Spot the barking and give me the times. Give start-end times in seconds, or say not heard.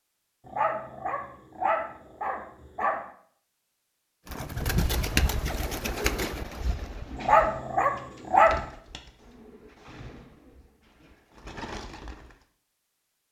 0.5-3.0, 7.2-8.6.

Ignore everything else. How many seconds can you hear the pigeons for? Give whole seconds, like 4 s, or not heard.
8 s.